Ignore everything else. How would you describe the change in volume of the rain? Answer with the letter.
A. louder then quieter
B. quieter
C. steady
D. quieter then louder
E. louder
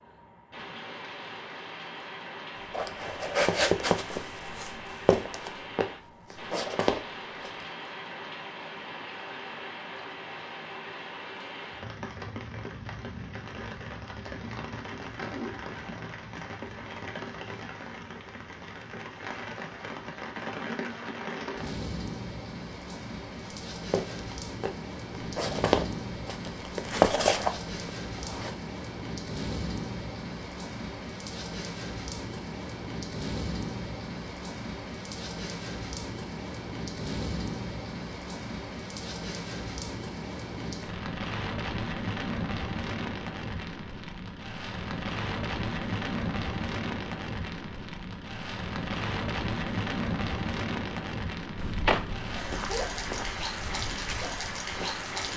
E.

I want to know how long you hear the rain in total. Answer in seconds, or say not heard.
55 s.